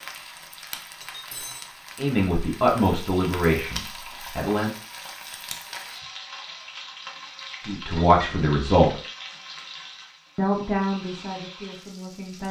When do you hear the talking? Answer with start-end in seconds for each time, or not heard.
1.9-4.7, 7.7-9.0, 10.3-12.4.